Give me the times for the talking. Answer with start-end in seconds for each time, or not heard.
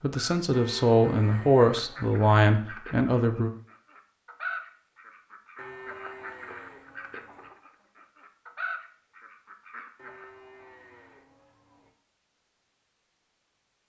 0.0-3.5.